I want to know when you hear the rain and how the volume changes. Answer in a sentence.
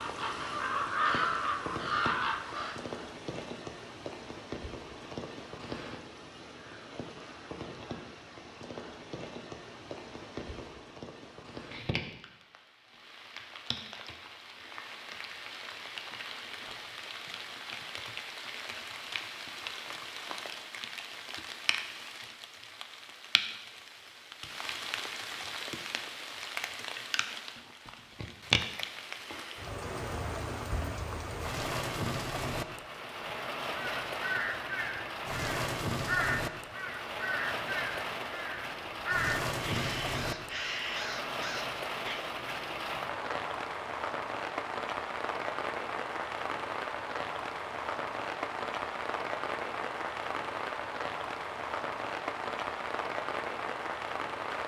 You can hear the rain from 0.0 to 54.6 s, getting louder.